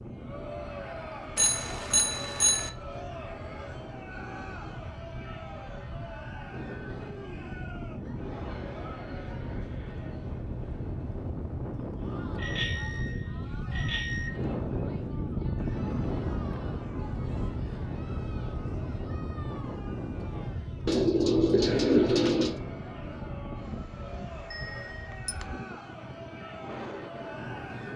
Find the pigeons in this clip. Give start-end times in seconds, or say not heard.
20.9-22.6.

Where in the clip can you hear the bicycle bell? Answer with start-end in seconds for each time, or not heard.
1.4-2.7, 12.3-14.3, 24.5-25.4.